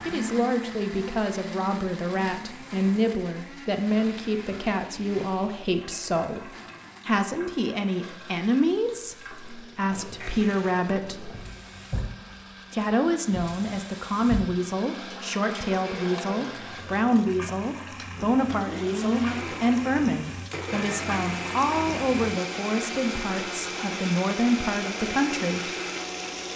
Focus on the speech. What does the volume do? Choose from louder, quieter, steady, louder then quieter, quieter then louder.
steady.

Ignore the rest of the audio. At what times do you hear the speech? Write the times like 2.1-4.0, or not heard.
0.1-11.3, 12.7-25.7.